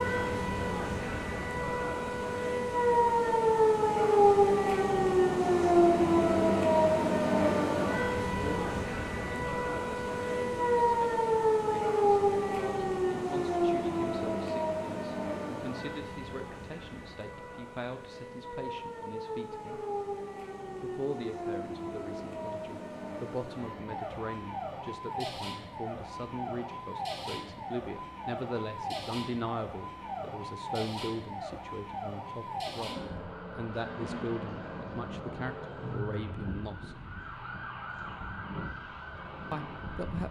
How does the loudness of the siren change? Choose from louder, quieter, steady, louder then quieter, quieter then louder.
quieter.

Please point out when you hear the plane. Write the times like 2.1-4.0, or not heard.
not heard.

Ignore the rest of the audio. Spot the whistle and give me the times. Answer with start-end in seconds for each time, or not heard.
not heard.